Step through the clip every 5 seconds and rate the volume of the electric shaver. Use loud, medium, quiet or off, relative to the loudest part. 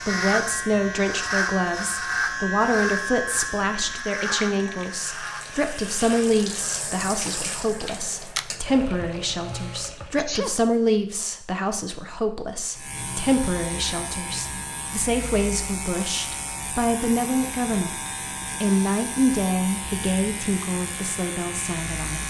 loud, medium, medium, medium, medium.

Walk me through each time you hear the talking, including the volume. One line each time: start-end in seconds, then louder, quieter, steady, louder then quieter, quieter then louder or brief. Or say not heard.
0.1-22.2 steady.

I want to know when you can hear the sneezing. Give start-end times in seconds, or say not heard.
10.2-10.7.